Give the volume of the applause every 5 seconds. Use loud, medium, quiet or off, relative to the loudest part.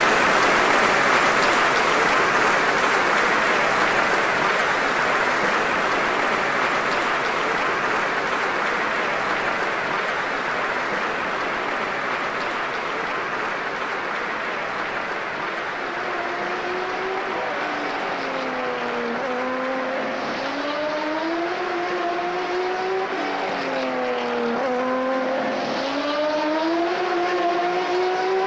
loud, loud, medium, medium, quiet, quiet.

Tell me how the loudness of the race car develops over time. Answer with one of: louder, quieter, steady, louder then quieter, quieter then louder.
louder.